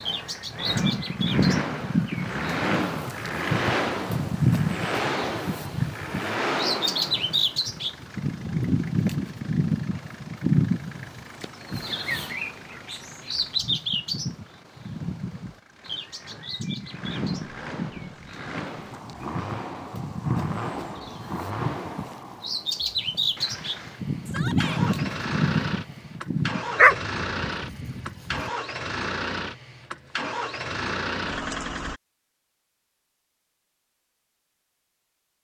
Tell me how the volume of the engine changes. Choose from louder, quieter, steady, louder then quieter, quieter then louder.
quieter then louder.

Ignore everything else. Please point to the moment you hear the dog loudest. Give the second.
27 s.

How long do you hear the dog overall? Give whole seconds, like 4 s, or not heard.
2 s.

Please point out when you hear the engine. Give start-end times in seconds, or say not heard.
0.0-32.0.